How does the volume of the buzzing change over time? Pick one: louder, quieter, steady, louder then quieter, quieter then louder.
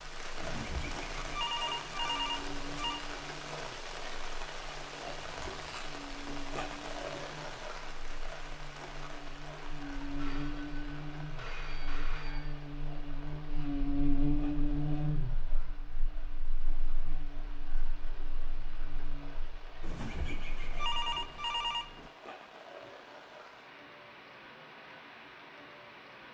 louder then quieter.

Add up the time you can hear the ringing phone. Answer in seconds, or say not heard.
7 s.